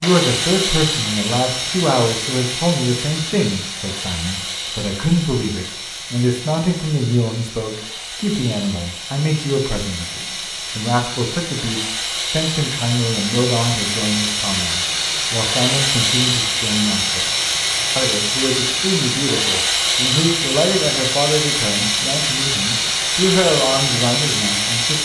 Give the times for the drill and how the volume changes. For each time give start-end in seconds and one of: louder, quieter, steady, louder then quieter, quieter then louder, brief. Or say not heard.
0.0-24.9 quieter then louder.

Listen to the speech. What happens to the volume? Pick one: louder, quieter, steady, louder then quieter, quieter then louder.
steady.